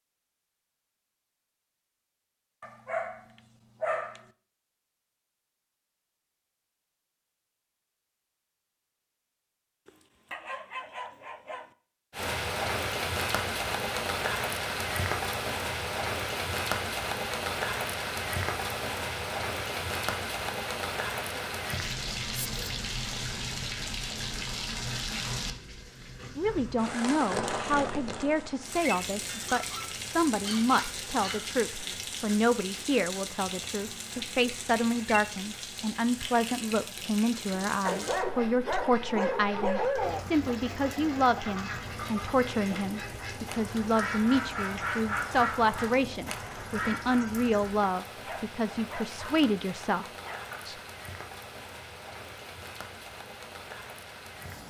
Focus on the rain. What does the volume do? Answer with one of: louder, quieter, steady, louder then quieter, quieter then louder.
quieter.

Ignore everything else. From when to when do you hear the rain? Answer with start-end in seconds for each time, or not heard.
12.1-54.6.